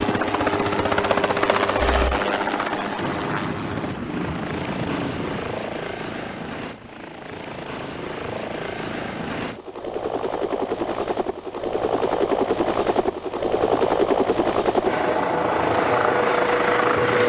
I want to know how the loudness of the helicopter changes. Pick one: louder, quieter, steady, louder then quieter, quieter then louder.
quieter then louder.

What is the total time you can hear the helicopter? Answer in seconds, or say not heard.
17 s.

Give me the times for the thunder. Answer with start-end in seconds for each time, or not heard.
3.0-5.5.